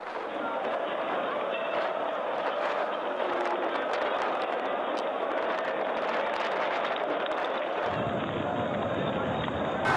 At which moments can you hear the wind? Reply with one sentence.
You can hear the wind from 0.0 to 9.9 s.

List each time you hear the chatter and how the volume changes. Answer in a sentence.
The chatter can be heard from 0.0 to 9.9 s, at a steady volume.